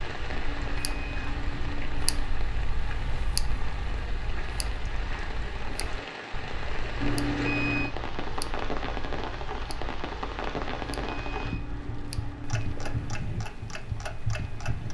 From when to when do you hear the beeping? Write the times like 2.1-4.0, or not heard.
0.3-2.3, 7.0-8.0, 10.7-13.2.